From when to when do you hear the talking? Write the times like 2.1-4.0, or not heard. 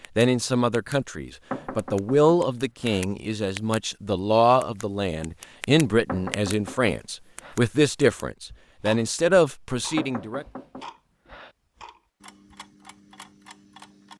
0.1-10.4.